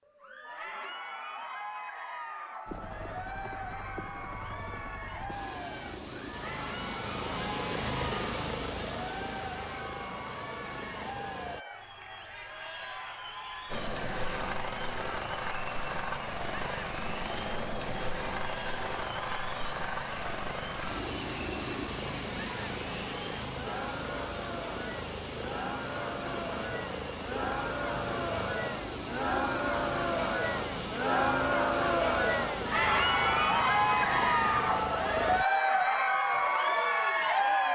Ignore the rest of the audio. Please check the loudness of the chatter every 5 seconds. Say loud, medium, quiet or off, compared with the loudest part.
quiet, quiet, quiet, quiet, quiet, medium, loud, loud.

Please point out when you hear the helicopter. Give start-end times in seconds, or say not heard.
2.6-11.7, 13.7-35.5.